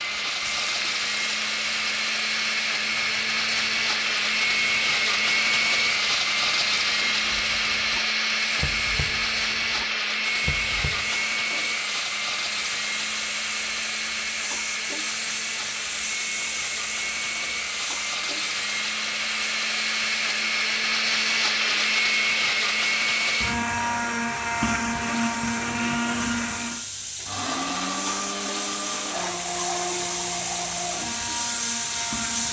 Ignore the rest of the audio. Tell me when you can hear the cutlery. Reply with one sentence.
You can't hear the cutlery here.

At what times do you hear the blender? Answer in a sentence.
You can hear the blender from 0.0 to 32.4 s.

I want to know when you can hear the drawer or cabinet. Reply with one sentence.
You can't hear the drawer or cabinet here.